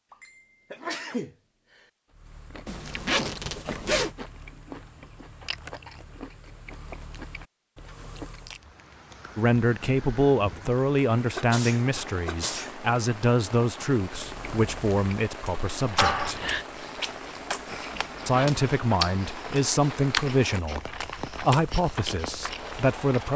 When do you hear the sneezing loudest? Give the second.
16 s.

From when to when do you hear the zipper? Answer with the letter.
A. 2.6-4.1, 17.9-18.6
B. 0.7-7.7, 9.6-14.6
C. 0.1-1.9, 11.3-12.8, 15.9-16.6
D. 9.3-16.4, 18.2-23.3
A.